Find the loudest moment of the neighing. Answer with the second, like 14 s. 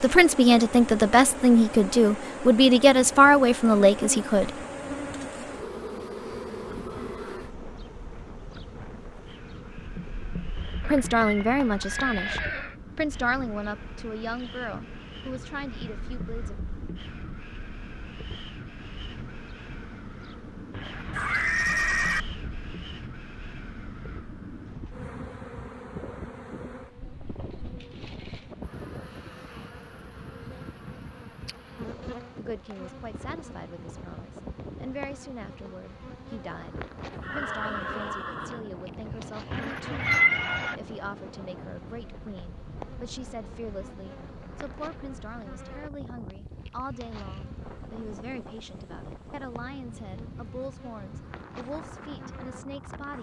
22 s.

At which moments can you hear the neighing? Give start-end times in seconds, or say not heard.
10.8-12.8, 21.1-22.2, 37.1-38.6.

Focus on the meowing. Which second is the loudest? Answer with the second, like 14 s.
40 s.